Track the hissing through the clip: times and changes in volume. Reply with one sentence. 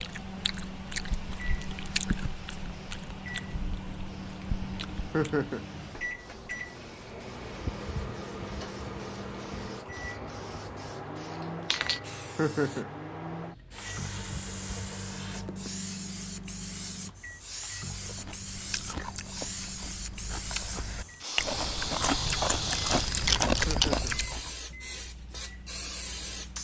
You can hear the hissing from 0.0 to 26.6 s, getting louder.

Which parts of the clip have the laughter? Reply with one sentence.
The laughter can be heard from 5.1 to 5.7 s, from 12.3 to 12.9 s and from 23.6 to 24.1 s.